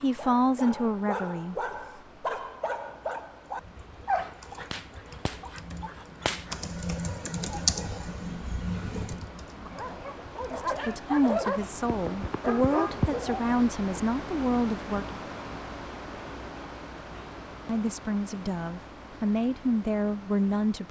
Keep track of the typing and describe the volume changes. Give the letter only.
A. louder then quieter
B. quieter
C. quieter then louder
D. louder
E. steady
A.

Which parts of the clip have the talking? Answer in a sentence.
The talking can be heard from 0.0 to 1.6 s, from 10.5 to 15.2 s and from 17.6 to 20.8 s.